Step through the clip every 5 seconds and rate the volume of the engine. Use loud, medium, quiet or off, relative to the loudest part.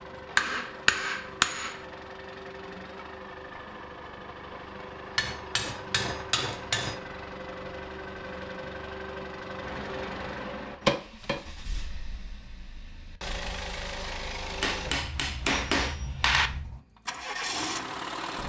medium, loud, loud, loud.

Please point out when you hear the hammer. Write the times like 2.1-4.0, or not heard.
0.3-1.8, 5.2-7.0, 9.6-11.4, 14.6-16.5.